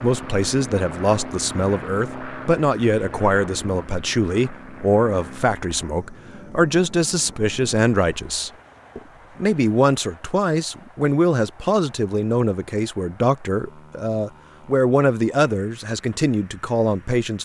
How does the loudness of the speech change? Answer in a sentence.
The loudness of the speech stays about the same.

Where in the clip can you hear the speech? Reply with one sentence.
You can hear the speech from 0.0 to 17.3 s.